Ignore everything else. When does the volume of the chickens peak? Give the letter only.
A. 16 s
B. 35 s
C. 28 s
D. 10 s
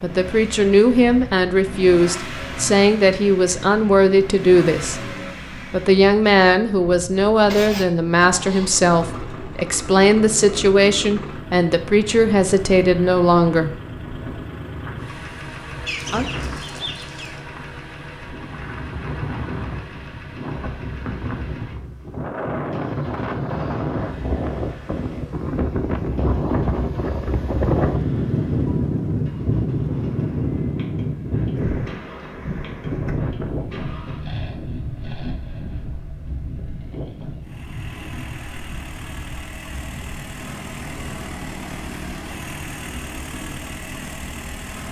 A.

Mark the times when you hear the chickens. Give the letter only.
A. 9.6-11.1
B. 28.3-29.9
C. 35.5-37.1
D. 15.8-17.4
D.